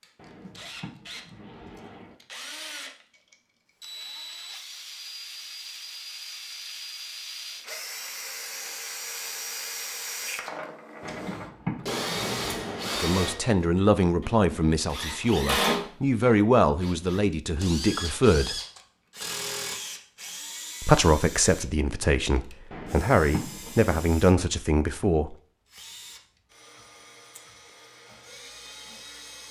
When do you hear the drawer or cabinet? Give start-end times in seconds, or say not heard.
0.1-2.1, 11.0-13.0, 22.7-24.1.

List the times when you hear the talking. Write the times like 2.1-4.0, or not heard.
12.9-18.6, 20.8-25.4.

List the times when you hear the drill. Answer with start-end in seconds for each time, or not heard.
0.0-29.4.